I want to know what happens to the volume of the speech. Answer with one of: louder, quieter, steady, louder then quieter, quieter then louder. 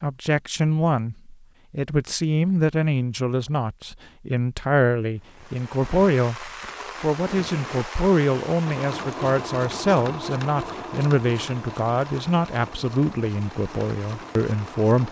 steady.